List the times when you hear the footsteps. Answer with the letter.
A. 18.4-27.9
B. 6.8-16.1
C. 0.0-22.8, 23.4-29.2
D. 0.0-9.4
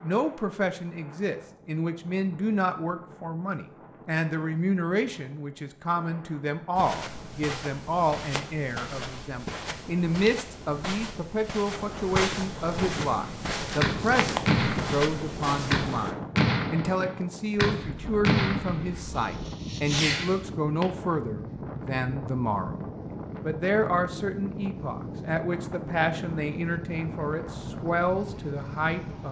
B.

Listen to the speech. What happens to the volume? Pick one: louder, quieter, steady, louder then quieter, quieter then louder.
steady.